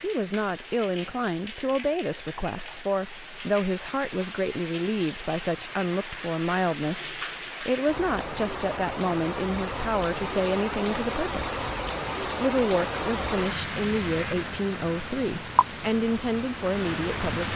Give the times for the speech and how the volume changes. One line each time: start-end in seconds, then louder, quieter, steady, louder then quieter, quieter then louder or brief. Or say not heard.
0.0-11.6 steady
12.2-17.5 steady.